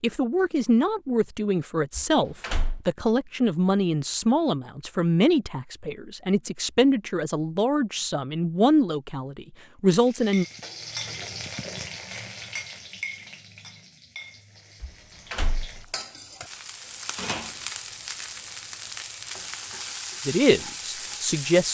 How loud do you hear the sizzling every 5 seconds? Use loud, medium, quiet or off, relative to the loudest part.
off, off, loud, loud, loud.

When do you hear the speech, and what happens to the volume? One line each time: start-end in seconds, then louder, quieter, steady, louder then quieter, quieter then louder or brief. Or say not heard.
0.0-10.4 steady
20.2-21.6 brief.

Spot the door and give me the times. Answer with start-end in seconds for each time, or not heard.
1.9-2.8, 14.8-15.8.